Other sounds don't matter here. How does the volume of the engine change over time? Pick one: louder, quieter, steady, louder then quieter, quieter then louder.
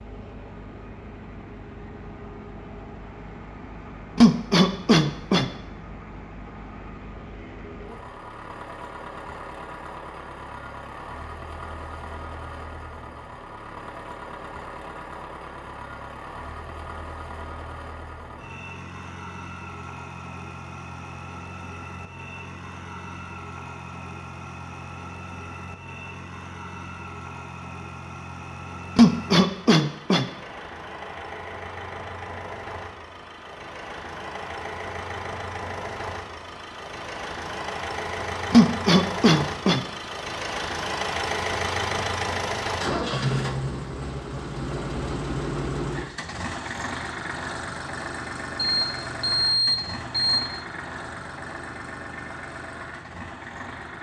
louder.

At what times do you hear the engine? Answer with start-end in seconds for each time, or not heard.
0.0-53.9.